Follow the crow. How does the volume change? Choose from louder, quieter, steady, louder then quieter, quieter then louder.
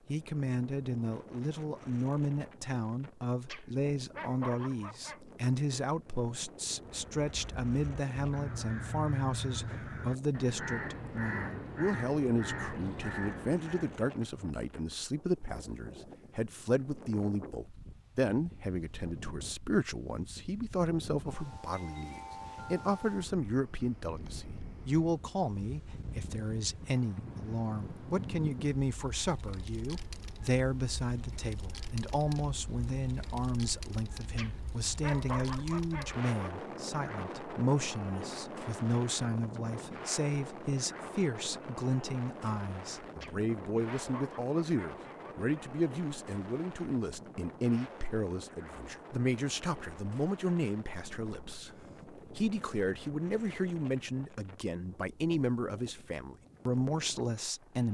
louder.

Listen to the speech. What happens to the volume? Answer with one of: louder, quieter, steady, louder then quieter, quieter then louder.
steady.